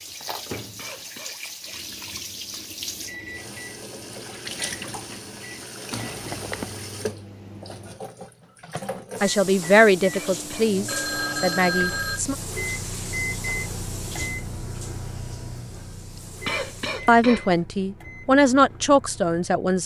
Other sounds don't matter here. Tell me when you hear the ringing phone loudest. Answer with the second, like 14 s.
12 s.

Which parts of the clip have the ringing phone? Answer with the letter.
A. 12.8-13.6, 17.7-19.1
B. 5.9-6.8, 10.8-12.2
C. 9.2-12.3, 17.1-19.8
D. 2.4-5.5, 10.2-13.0
B.